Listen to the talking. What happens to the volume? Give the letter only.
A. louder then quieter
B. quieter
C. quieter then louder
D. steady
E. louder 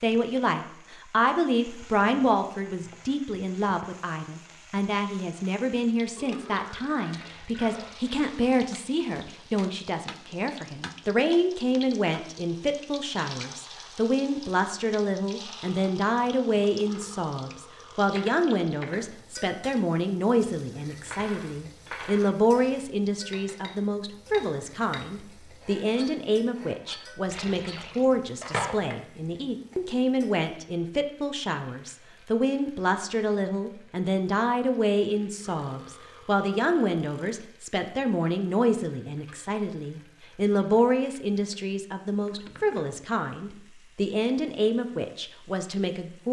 D.